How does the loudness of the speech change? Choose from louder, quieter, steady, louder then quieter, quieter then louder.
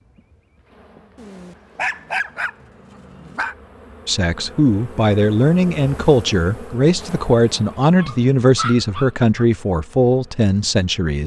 steady.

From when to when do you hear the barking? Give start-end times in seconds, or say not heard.
1.1-3.5, 8.0-9.4.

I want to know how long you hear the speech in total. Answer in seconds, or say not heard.
7 s.